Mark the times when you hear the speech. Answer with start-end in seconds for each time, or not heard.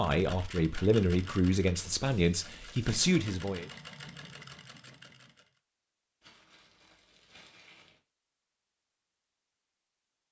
0.0-3.7.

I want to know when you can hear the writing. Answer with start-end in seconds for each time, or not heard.
not heard.